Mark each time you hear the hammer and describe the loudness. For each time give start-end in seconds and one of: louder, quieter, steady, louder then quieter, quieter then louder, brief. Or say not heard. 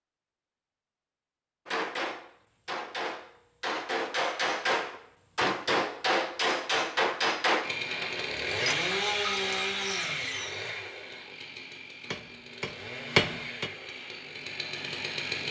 1.6-8.8 louder
12.1-13.7 brief.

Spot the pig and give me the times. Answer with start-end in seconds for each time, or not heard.
not heard.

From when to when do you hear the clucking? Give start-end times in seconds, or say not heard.
8.5-10.5.